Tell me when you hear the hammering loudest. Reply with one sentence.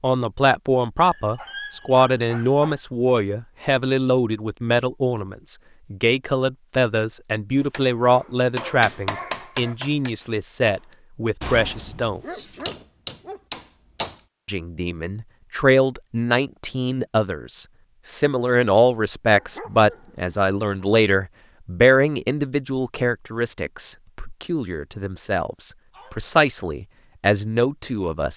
The volume of the hammering peaks at 9 seconds.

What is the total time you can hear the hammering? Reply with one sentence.
The hammering can be heard for 5 seconds in total.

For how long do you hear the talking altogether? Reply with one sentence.
The talking can be heard for 26 seconds in total.